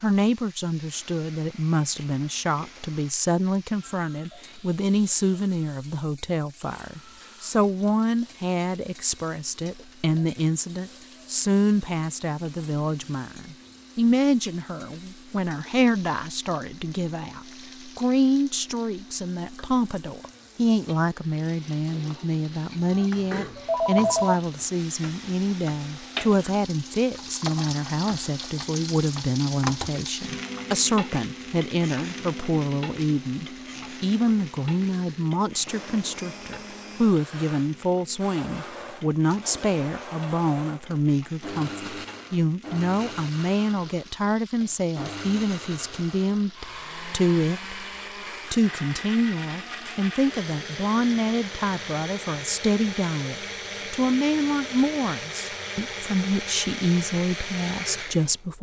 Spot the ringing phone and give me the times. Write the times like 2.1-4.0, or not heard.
23.3-24.4.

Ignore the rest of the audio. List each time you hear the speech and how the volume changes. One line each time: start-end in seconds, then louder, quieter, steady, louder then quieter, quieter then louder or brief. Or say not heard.
0.0-47.8 steady
48.5-58.5 steady.